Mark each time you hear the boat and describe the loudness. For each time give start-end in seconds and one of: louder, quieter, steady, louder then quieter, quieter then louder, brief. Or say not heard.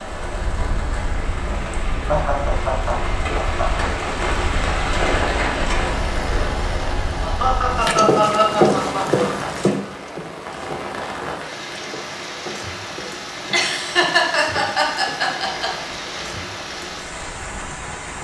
0.2-18.1 louder then quieter.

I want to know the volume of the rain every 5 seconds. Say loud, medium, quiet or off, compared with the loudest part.
loud, loud, medium, medium.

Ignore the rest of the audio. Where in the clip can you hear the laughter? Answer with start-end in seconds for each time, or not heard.
2.0-3.9, 7.2-9.7, 13.5-15.7.